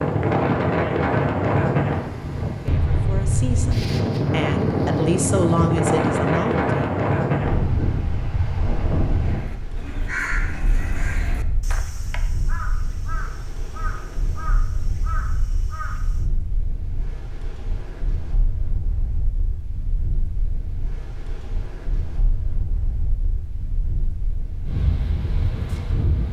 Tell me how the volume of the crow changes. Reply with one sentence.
The loudness of the crow goes down.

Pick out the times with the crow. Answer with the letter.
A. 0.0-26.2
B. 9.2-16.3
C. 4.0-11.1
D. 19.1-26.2
B.